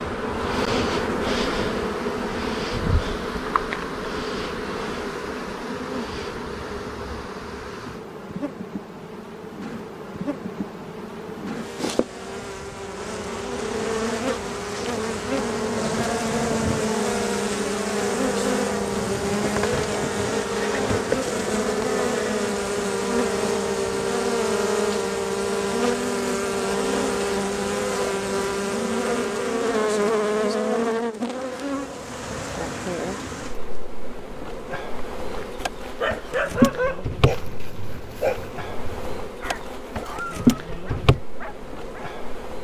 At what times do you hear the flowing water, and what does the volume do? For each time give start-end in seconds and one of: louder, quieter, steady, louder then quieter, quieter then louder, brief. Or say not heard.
not heard.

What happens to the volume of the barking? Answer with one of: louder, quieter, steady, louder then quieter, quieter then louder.
quieter.